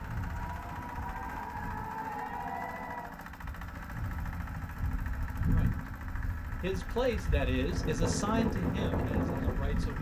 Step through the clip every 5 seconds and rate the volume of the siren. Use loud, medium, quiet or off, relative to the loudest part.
loud, off.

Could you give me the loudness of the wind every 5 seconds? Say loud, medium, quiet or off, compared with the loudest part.
medium, loud.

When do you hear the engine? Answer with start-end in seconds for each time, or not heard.
0.0-9.9.